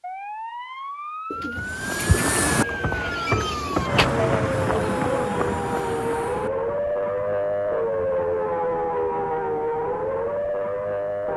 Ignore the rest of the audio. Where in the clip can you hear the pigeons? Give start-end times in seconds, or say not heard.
1.3-4.1.